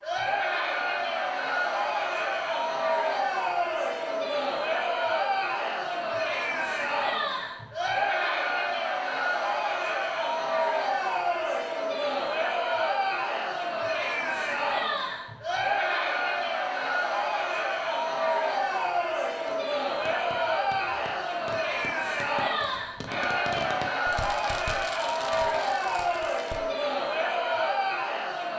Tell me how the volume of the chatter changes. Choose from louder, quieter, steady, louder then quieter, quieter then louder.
steady.